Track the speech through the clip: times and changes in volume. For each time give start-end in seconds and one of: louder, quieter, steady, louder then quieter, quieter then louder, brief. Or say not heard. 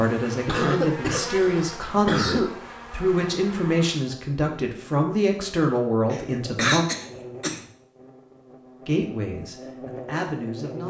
0.0-6.8 steady
8.8-10.8 brief.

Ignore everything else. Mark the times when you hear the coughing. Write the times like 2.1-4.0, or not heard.
0.5-2.5, 6.1-7.7.